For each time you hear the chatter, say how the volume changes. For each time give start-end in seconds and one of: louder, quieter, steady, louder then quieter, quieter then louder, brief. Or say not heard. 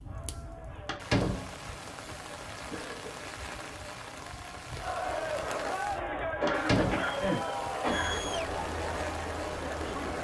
0.0-10.1 louder.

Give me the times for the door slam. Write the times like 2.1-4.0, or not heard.
0.8-1.5, 6.5-7.1.